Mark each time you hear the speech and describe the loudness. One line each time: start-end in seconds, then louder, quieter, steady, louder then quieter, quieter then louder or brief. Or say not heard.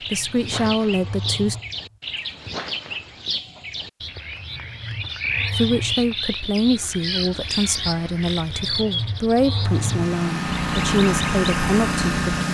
0.1-1.6 brief
5.5-12.2 steady.